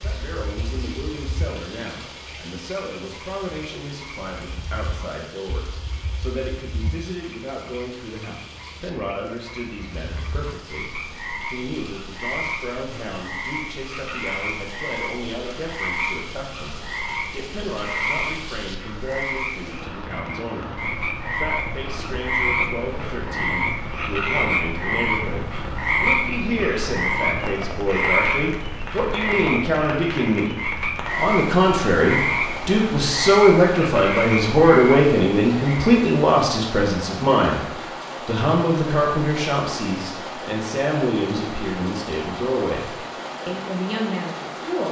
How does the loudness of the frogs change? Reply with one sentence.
The loudness of the frogs goes up.